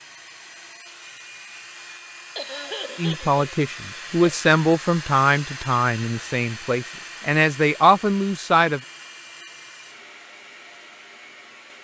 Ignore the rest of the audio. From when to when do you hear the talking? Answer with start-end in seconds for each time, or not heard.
3.0-8.8.